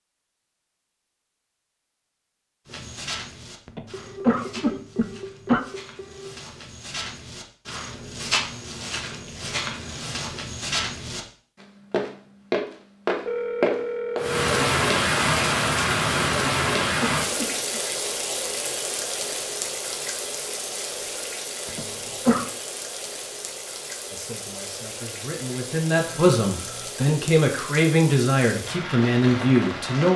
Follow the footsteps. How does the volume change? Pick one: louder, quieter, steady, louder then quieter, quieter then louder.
louder.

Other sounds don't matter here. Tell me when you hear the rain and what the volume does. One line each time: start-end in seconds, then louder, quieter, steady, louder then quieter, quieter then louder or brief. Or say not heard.
14.2-30.1 quieter.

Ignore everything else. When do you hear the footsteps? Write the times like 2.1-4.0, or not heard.
2.6-14.2.